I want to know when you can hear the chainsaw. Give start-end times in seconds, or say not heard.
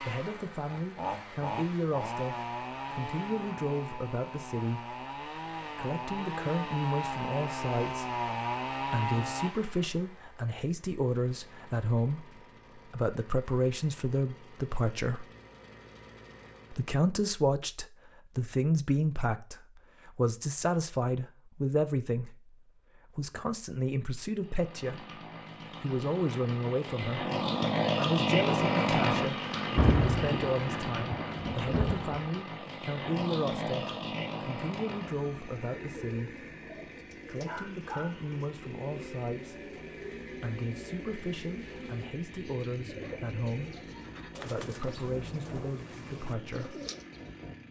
0.0-16.9, 24.4-47.6.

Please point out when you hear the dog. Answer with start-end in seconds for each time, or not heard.
not heard.